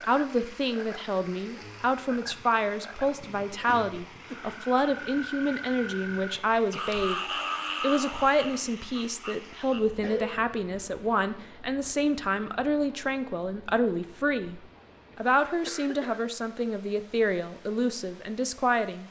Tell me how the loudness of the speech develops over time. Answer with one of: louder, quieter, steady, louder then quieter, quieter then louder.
steady.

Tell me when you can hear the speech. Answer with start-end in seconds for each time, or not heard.
0.0-7.2, 7.8-19.0.